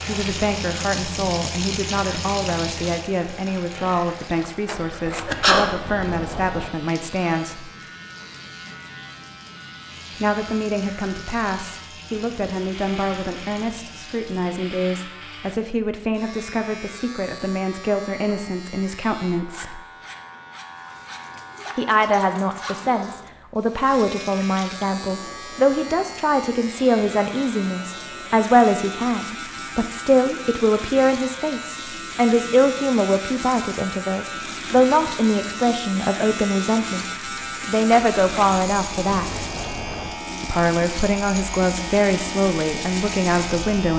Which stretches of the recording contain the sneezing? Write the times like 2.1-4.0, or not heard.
4.8-5.8.